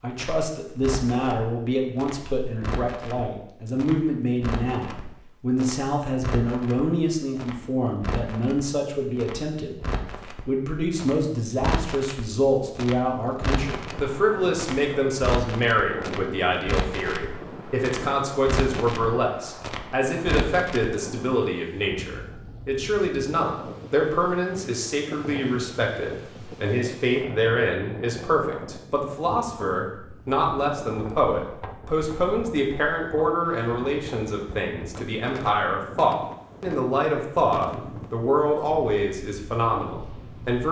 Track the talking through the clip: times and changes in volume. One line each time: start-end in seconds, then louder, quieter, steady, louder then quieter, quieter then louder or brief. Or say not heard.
0.0-40.6 steady.